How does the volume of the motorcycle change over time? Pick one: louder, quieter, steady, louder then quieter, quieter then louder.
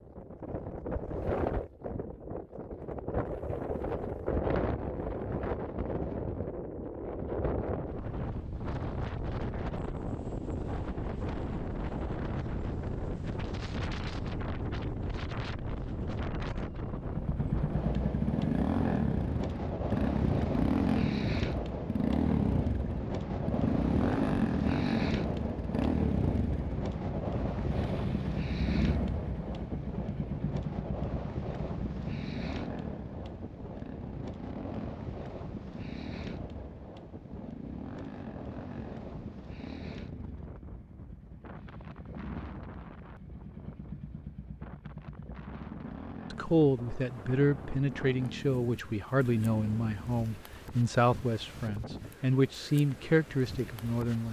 quieter.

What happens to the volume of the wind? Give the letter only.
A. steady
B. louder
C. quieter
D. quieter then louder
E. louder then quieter
C.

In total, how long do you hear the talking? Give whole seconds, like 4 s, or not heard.
8 s.